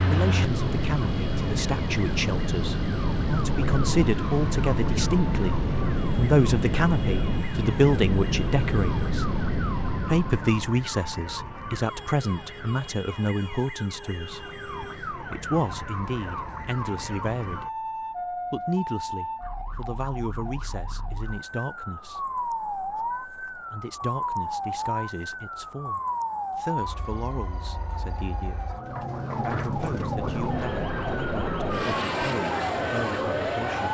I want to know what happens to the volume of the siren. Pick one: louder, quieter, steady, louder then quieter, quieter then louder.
louder.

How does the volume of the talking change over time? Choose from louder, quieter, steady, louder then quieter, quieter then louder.
quieter.